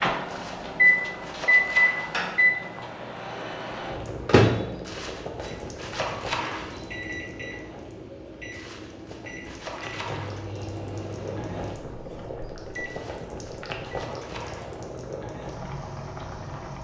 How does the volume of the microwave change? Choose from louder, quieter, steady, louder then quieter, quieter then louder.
quieter.